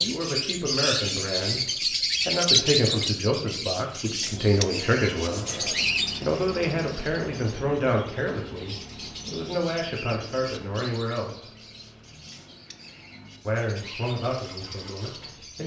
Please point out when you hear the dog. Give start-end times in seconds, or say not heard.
not heard.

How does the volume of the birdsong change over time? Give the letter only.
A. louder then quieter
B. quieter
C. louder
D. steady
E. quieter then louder
B.